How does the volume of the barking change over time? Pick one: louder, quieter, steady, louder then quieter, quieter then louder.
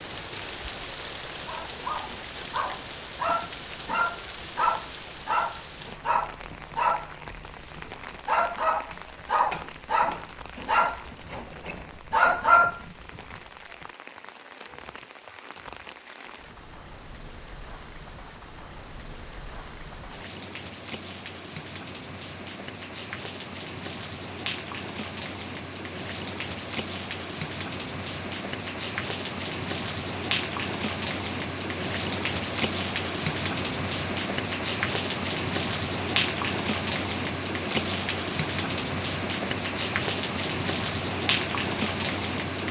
louder.